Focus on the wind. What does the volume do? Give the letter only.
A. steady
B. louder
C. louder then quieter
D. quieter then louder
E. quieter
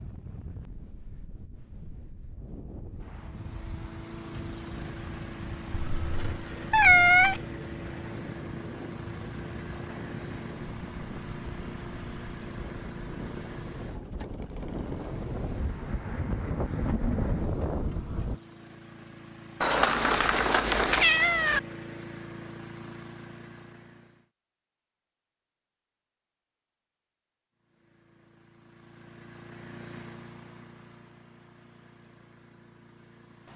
B.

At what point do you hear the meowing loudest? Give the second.
7 s.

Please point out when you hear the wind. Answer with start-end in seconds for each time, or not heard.
0.0-18.4.